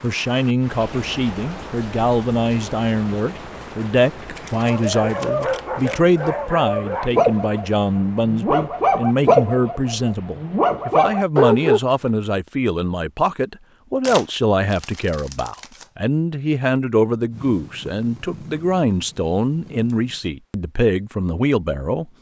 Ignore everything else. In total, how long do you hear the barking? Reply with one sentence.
You can hear the barking for 7 seconds altogether.